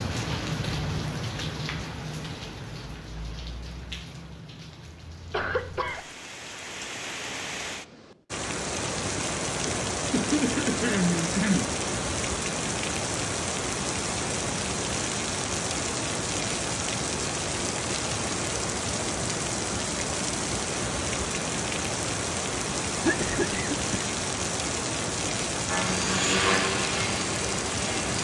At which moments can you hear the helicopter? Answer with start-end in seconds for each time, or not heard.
25.6-28.1.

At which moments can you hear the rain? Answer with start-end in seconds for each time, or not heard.
0.0-28.1.